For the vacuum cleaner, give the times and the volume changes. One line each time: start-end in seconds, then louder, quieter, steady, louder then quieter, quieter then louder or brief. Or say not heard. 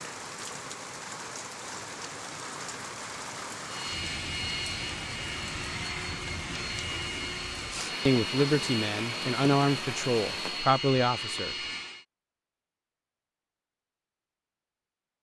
3.6-12.1 steady.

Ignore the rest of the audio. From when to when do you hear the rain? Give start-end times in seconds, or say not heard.
0.0-10.8.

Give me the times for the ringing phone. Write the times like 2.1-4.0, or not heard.
not heard.